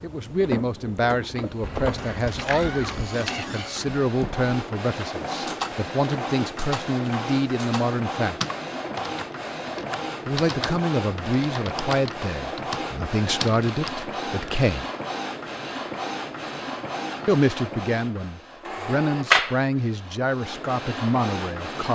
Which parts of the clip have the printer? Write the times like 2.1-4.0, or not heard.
0.0-21.9.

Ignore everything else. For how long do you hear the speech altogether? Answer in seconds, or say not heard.
18 s.